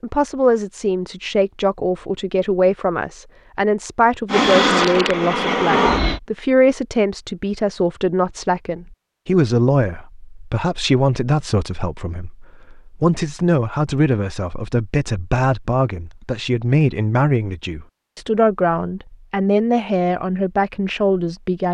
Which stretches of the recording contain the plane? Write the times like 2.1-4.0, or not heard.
4.2-6.2.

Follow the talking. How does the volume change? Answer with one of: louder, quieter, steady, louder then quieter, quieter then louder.
steady.